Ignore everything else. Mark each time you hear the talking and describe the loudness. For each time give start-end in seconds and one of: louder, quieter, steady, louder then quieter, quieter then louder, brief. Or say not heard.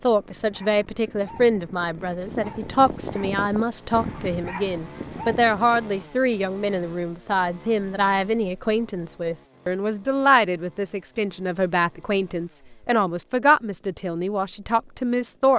0.0-15.5 steady.